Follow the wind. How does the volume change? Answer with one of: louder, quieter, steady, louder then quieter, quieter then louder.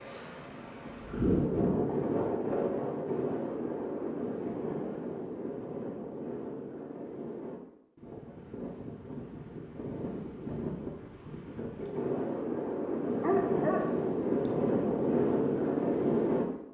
quieter then louder.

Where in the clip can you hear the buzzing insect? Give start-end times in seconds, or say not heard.
not heard.